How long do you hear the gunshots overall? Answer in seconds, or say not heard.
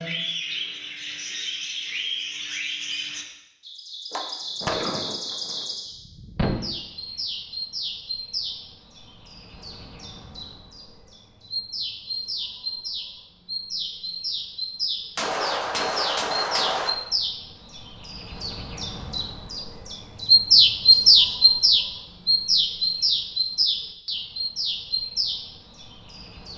4 s.